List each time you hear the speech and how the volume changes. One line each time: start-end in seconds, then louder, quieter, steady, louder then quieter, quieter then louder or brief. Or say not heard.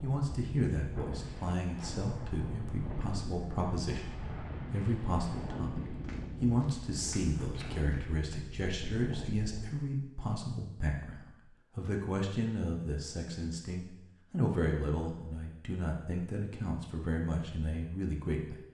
0.0-18.6 steady.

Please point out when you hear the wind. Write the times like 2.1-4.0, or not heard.
0.0-9.7.